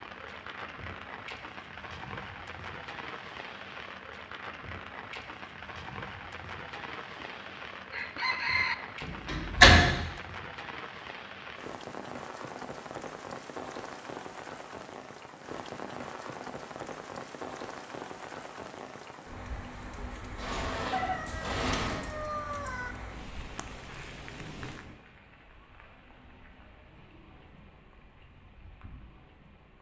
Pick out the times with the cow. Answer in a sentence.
You can't hear the cow here.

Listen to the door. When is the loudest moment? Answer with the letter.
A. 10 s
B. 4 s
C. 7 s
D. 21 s
A.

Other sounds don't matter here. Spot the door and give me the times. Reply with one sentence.
The door can be heard from 9.0 to 10.0 s and from 20.4 to 22.0 s.